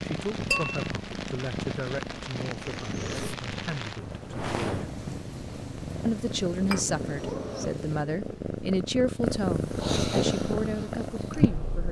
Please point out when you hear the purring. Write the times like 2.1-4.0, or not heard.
0.0-11.8.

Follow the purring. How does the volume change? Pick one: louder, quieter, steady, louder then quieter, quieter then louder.
louder.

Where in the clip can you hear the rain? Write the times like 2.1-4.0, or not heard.
0.0-8.1.